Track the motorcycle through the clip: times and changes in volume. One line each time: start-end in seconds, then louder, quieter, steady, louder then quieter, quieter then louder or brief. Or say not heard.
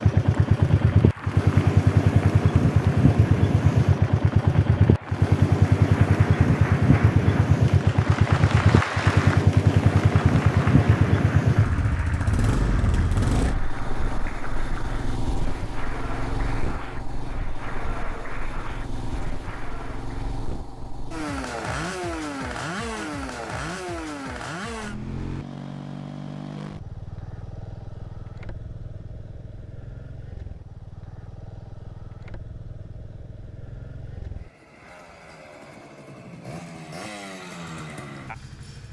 0.0-38.8 quieter.